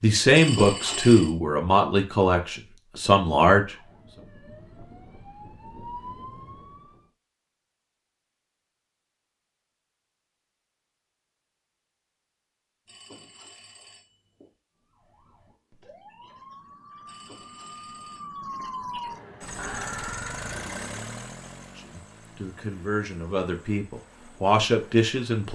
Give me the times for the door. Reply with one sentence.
You can't hear the door here.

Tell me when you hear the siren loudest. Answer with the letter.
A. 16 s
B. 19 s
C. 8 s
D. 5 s
B.